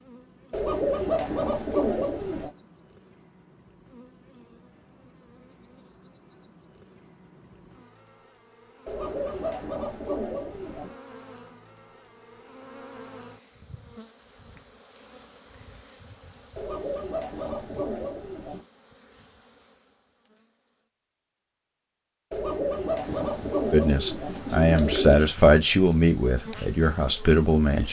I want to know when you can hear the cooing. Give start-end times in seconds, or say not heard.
0.5-2.5, 8.8-10.9, 16.6-18.6, 22.3-25.2.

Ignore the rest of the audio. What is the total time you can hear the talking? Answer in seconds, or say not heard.
4 s.